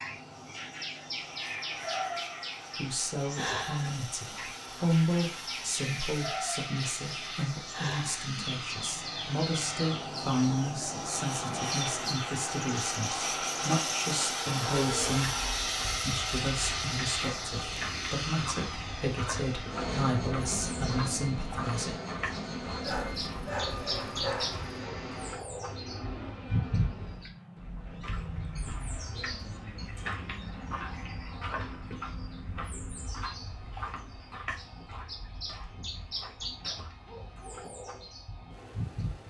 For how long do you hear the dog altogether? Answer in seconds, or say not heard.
2 s.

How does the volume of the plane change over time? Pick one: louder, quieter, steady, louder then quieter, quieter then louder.
louder then quieter.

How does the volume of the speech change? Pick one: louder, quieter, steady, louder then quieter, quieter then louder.
steady.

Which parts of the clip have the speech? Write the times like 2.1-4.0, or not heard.
2.8-21.9.